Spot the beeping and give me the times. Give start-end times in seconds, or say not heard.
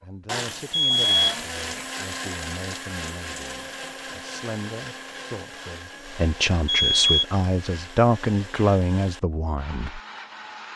0.7-1.9, 6.7-7.2.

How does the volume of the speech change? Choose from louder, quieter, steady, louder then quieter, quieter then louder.
louder.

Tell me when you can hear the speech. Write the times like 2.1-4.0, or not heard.
0.0-10.0.